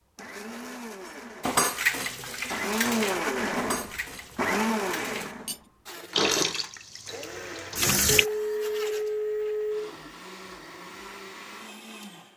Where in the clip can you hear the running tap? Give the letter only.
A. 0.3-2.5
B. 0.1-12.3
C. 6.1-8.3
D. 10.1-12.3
C.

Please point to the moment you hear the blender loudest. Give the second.
3 s.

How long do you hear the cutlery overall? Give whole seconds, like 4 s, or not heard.
5 s.